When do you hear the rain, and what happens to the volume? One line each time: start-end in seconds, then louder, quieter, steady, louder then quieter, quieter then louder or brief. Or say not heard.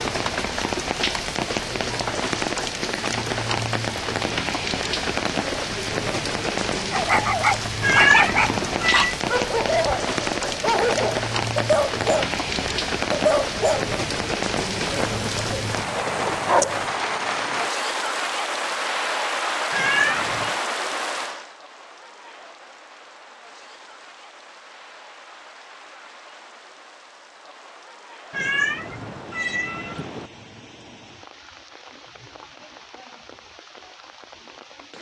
0.0-34.9 quieter.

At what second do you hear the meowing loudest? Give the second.
8 s.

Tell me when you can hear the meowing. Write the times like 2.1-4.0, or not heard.
7.8-9.2, 19.7-20.6, 28.3-30.3.